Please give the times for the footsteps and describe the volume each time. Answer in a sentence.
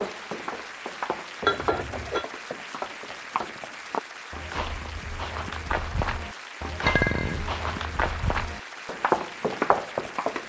The footsteps can be heard from 0.0 to 10.4 s, getting louder.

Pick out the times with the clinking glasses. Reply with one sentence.
The clinking glasses can be heard from 1.4 to 2.2 s and from 6.8 to 7.5 s.